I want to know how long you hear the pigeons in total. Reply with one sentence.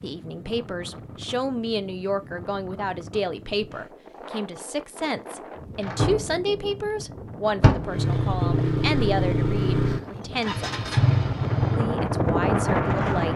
The pigeons can't be heard in this clip.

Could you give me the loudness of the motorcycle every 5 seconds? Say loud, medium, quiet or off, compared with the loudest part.
off, loud, loud.